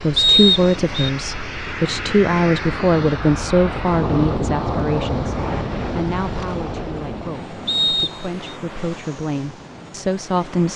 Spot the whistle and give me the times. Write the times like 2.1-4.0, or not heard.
0.1-1.1, 7.7-8.4.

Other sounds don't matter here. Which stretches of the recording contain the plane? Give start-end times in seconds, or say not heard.
0.0-10.7.